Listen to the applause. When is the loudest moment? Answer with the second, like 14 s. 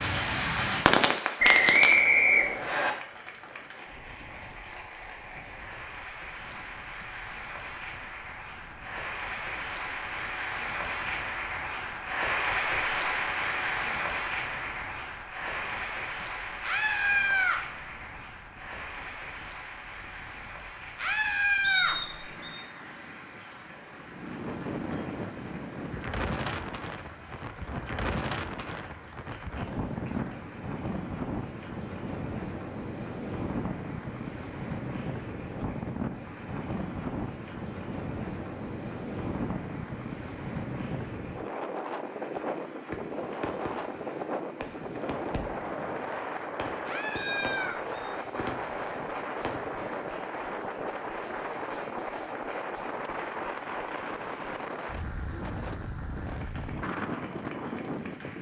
13 s.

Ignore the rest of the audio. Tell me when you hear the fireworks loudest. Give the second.
1 s.